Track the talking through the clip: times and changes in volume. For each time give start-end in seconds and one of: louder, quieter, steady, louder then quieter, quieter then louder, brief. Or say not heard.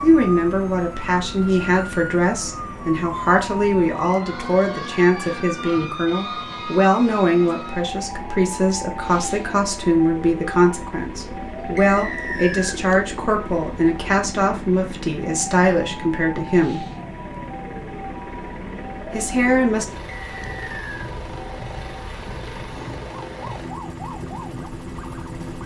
0.0-16.9 steady
19.1-19.9 brief.